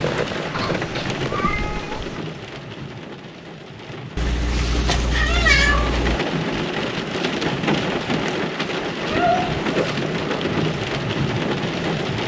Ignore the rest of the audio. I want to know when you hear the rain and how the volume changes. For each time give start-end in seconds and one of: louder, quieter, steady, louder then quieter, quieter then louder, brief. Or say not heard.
0.0-12.2 quieter then louder.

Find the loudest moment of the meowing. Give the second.
6 s.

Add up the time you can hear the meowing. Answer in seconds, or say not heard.
4 s.